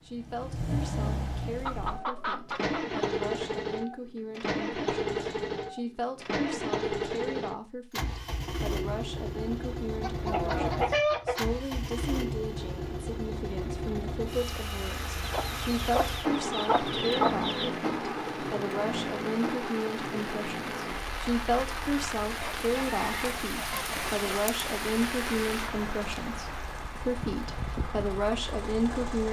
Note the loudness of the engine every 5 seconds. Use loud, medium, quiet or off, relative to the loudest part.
loud, loud, loud, loud, medium, medium.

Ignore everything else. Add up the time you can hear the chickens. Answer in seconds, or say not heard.
7 s.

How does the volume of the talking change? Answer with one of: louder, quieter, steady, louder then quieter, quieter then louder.
louder.